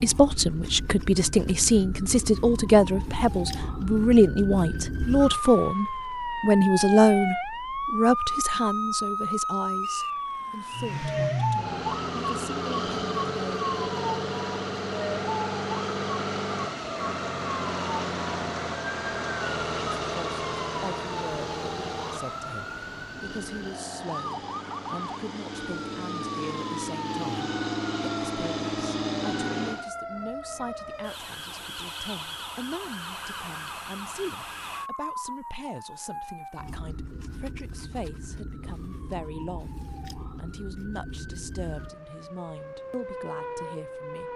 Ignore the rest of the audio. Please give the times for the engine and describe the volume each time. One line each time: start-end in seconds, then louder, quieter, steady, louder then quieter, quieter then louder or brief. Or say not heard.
10.7-29.9 quieter then louder.